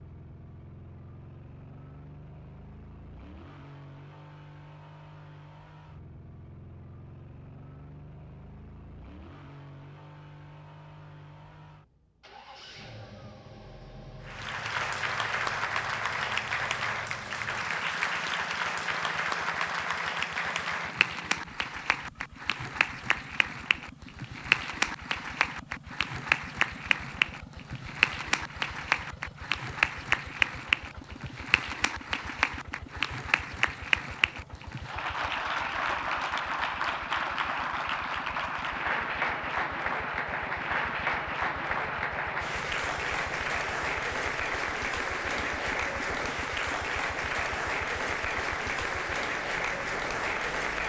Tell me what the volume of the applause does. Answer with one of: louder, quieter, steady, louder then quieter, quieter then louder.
steady.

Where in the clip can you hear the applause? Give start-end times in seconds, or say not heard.
14.2-50.8.